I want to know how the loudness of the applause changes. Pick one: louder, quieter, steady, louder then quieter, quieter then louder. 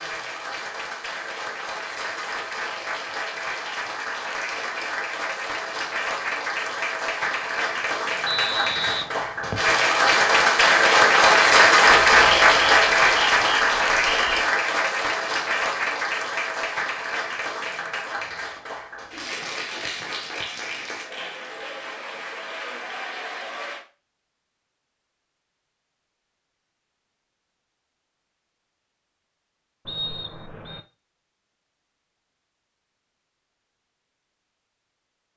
louder then quieter.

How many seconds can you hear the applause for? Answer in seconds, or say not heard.
24 s.